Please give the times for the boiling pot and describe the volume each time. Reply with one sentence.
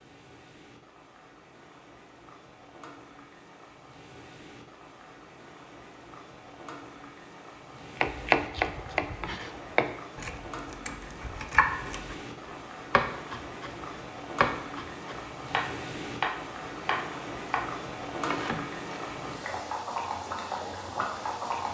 You can hear the boiling pot from 0.0 to 21.6 s, getting louder.